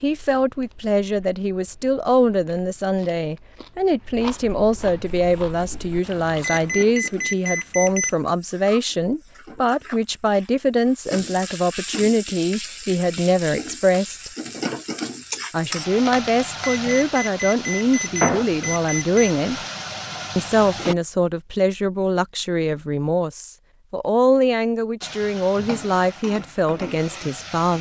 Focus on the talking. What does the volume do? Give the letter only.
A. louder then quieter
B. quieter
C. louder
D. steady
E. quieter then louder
D.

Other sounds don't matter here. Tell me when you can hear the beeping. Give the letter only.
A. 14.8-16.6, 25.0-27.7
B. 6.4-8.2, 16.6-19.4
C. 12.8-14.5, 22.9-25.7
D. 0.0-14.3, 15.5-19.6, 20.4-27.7
B.